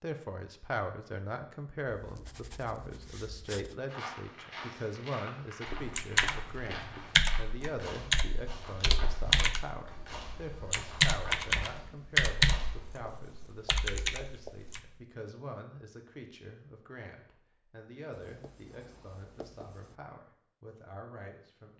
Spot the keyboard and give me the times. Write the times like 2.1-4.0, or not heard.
5.8-15.0.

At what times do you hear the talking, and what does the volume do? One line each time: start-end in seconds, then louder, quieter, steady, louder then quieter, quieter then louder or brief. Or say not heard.
0.0-21.7 quieter.